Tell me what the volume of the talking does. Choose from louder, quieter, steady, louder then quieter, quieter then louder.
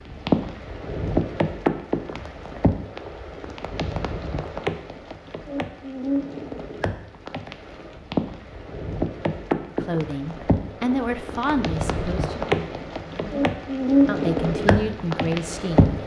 quieter then louder.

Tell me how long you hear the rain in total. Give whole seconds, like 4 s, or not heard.
16 s.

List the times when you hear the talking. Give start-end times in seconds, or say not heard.
9.7-16.0.